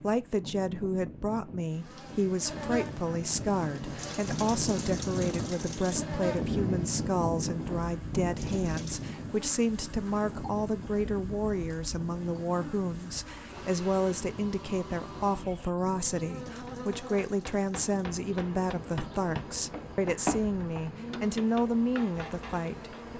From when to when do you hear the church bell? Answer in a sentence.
The church bell can't be heard in this clip.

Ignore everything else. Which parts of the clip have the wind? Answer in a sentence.
The wind can be heard from 0.0 to 23.1 s.